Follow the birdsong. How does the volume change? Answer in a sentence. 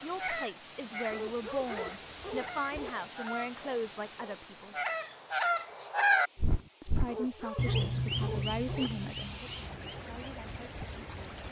The loudness of the birdsong goes up, then down.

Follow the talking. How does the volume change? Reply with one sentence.
The loudness of the talking goes down.